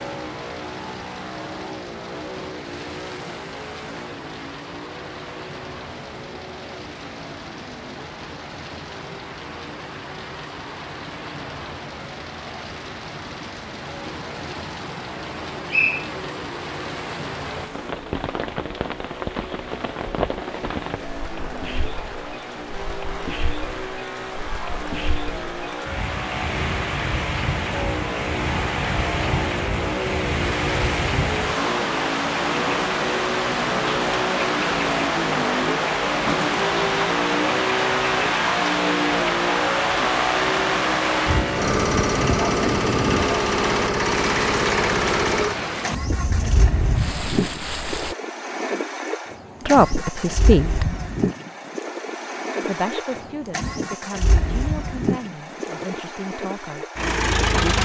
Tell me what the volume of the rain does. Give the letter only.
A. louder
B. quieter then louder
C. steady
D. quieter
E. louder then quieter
A.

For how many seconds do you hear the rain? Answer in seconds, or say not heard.
48 s.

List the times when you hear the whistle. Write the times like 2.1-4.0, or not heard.
15.7-16.1.